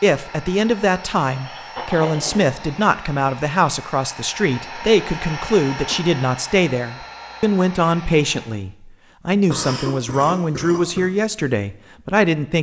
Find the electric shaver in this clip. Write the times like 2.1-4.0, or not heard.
not heard.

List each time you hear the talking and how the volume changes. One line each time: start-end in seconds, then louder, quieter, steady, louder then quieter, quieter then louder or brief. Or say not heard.
0.0-12.5 steady.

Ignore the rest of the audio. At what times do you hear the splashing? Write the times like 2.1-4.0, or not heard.
not heard.